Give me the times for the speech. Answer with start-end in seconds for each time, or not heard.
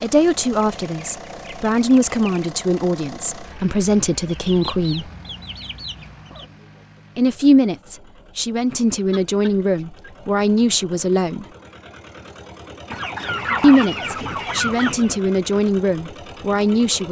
0.0-5.0, 7.2-11.4, 13.6-17.0.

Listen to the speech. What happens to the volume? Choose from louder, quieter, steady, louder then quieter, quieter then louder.
steady.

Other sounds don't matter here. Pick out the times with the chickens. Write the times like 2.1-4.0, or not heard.
0.6-2.5, 4.2-6.5, 9.1-10.3, 12.9-15.2.